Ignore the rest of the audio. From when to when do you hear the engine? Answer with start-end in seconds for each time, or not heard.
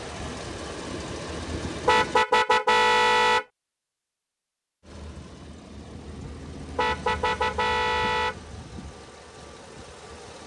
0.0-2.2, 4.8-10.4.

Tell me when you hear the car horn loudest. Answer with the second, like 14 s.
3 s.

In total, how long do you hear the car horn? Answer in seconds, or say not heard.
3 s.